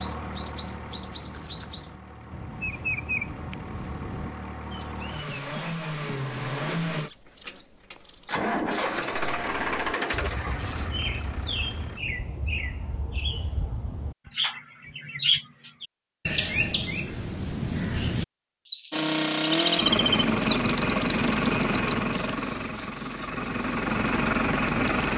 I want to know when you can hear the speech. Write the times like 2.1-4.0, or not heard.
not heard.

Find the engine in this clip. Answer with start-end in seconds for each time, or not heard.
0.0-12.0, 18.9-25.1.